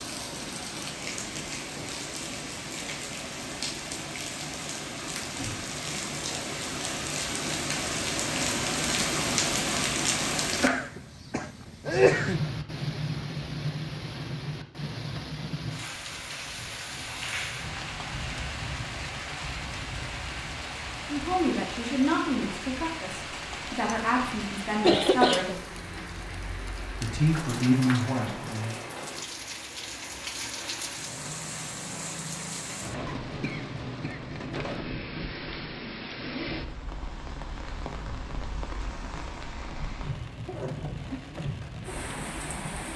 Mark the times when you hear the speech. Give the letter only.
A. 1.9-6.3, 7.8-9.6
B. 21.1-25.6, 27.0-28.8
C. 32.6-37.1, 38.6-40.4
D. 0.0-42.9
B.